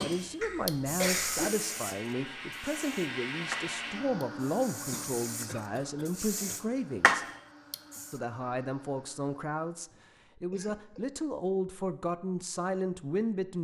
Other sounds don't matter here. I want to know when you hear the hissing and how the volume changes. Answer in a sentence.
You can hear the hissing from 0.0 to 8.2 s, getting quieter then louder.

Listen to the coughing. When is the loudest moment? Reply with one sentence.
The volume of the coughing peaks at 1 second.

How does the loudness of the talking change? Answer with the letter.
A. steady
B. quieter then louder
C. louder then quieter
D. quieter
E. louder
A.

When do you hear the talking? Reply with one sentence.
You can hear the talking from 0.0 to 7.2 s and from 8.1 to 13.5 s.